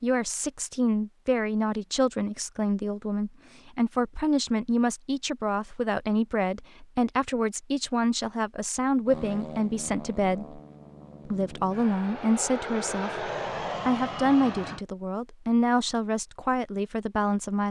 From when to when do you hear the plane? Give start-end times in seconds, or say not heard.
9.1-14.8.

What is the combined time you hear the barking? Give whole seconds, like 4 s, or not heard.
not heard.